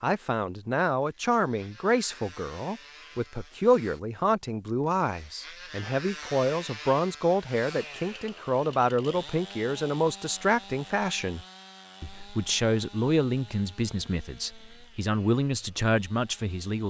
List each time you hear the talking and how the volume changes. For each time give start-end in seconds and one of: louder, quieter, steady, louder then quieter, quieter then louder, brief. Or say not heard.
0.0-16.8 steady.